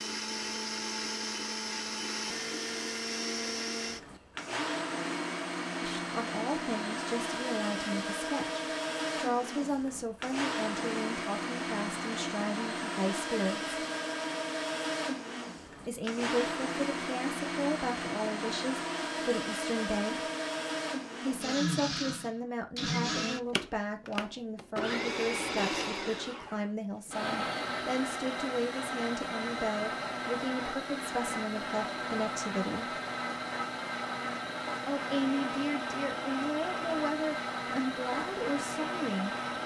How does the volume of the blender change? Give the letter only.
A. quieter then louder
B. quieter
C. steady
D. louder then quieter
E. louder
C.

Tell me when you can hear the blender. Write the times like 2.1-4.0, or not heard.
0.0-39.6.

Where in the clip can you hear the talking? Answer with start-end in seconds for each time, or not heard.
5.8-13.8, 15.8-20.3, 21.2-33.0, 34.9-39.4.